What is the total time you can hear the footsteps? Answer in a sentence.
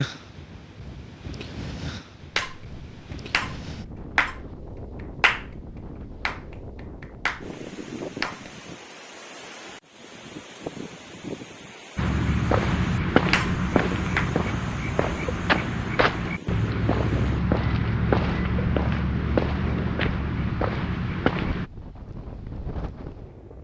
You can hear the footsteps for 10 seconds altogether.